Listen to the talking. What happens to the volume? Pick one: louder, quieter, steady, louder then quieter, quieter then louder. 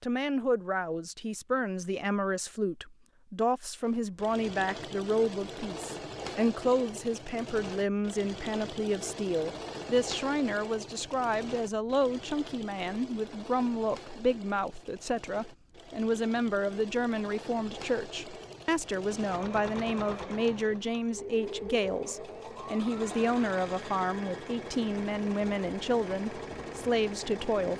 steady.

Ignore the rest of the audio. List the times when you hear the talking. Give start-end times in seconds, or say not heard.
0.0-27.7.